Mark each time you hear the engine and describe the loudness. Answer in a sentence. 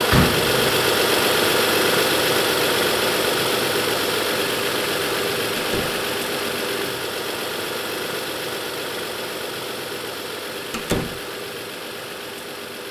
You can hear the engine from 0.0 to 12.8 s, getting quieter.